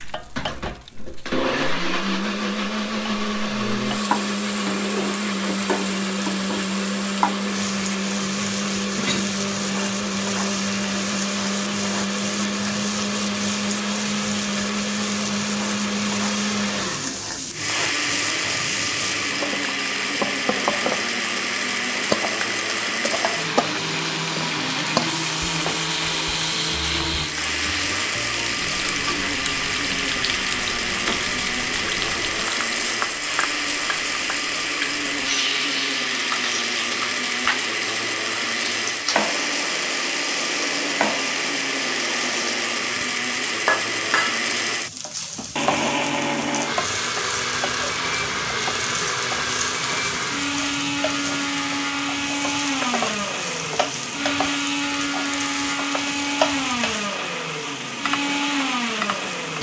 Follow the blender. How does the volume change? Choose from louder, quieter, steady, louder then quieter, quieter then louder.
steady.